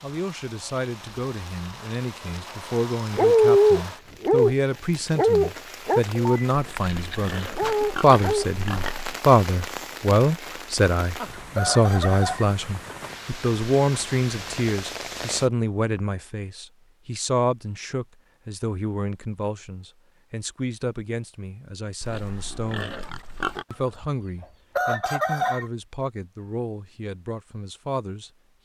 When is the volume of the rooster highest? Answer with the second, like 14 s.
25 s.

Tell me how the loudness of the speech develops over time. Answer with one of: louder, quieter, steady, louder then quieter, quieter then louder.
louder then quieter.